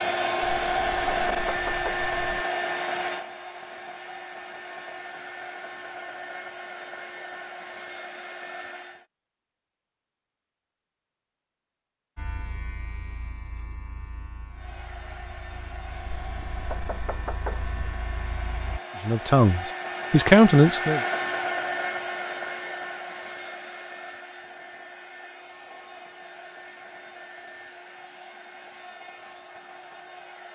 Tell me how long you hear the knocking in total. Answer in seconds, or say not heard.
4 s.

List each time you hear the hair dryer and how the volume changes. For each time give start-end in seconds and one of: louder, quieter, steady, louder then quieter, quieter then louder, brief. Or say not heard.
0.0-9.1 quieter
14.5-30.5 louder then quieter.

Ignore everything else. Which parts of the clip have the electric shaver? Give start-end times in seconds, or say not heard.
12.2-18.8.